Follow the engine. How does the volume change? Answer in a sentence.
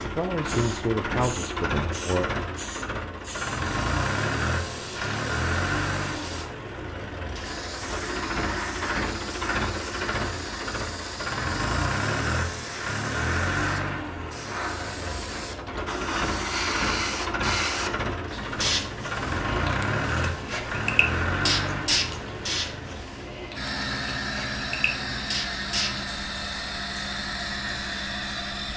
The volume of the engine stays about the same.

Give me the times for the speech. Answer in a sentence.
You can hear the speech from 0.0 to 2.4 s.